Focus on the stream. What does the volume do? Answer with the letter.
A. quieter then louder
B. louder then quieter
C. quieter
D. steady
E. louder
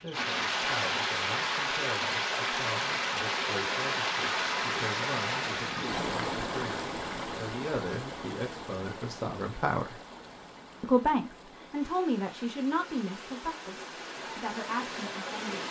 A.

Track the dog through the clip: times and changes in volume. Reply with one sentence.
The dog can't be heard in this clip.